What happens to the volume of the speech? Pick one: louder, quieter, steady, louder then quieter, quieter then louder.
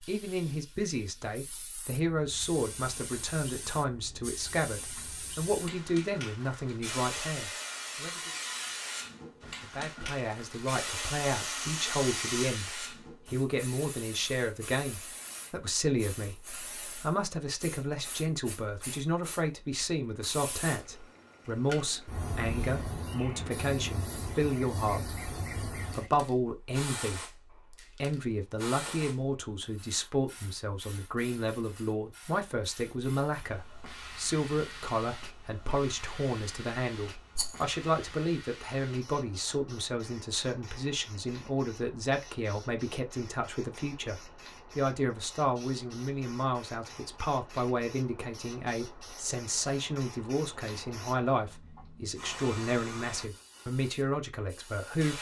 steady.